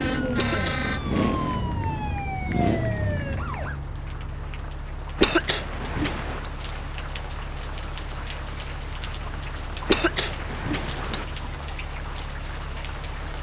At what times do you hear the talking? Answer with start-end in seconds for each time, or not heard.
not heard.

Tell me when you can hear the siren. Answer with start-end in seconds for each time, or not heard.
0.0-3.8.